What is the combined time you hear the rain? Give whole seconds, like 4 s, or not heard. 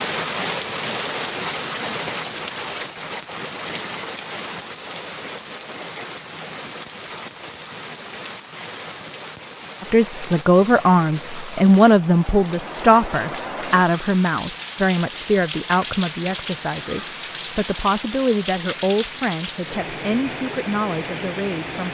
22 s.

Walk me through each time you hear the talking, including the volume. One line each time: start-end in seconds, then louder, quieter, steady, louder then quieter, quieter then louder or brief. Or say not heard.
9.8-21.8 quieter.